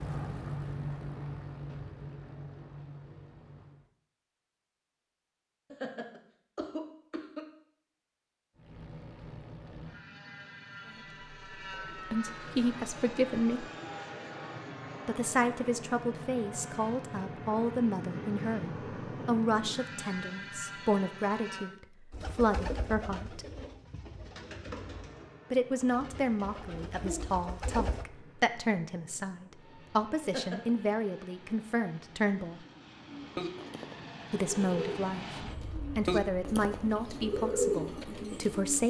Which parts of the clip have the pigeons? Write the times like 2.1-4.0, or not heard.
22.1-28.1, 33.0-38.8.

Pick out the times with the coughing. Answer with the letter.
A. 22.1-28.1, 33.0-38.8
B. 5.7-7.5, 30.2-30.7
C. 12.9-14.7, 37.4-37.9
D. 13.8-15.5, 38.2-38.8
B.